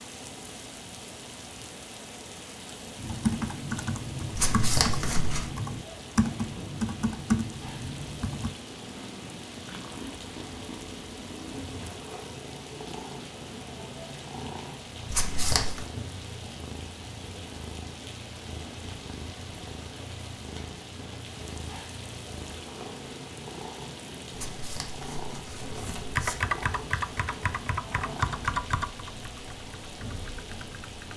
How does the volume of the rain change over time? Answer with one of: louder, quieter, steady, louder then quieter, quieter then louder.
steady.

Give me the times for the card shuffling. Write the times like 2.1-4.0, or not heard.
4.3-5.5, 15.1-15.8, 24.3-26.4.